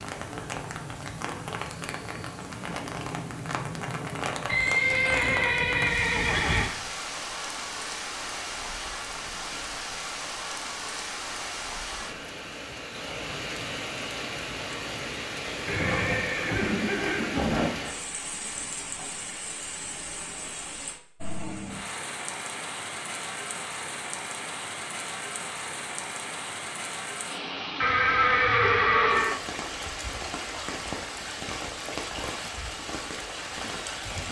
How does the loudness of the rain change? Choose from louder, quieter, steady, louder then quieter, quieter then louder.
steady.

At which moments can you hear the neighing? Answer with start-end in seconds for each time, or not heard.
4.5-6.7, 15.7-17.7, 27.8-29.4.